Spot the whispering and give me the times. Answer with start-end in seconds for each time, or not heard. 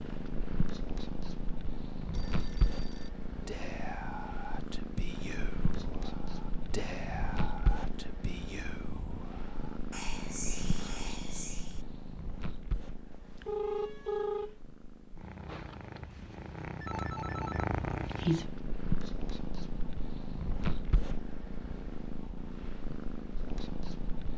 3.5-11.8.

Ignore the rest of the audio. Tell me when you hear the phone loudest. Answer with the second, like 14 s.
14 s.